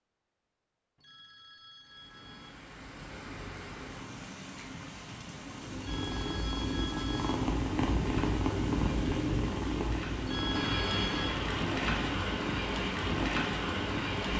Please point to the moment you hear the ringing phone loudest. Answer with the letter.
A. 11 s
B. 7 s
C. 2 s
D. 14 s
A.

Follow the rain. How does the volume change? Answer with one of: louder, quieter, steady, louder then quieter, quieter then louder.
louder.